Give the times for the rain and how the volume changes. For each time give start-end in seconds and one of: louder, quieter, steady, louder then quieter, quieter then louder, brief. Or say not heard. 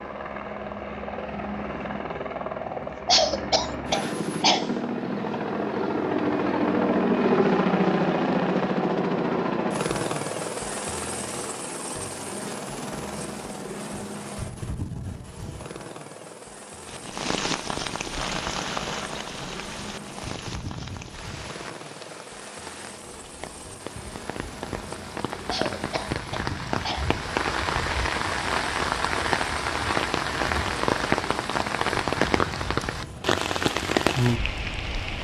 16.9-35.1 quieter then louder.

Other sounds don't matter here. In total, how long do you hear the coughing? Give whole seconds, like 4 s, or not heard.
4 s.